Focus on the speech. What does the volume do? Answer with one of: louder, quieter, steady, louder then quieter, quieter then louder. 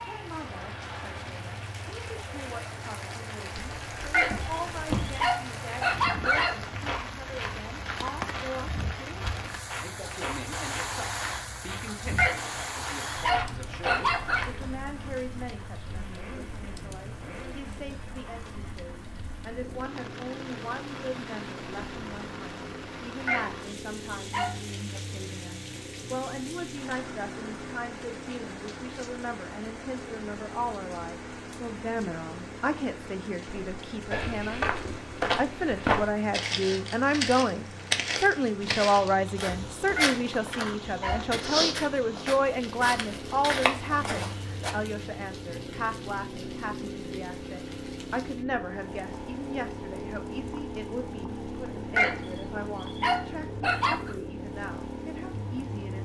louder then quieter.